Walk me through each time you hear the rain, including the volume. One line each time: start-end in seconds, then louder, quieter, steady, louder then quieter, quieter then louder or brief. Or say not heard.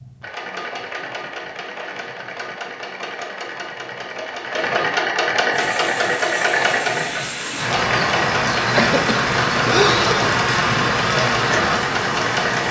5.5-12.6 louder.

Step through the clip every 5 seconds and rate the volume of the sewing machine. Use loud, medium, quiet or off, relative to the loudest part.
medium, loud, loud.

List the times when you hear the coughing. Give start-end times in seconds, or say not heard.
8.8-10.3.